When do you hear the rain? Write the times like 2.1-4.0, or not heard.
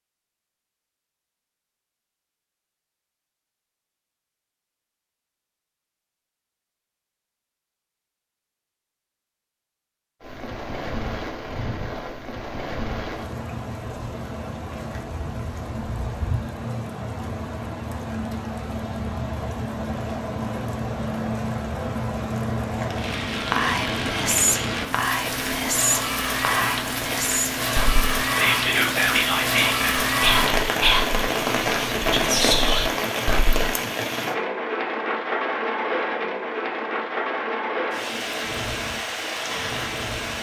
10.2-40.3.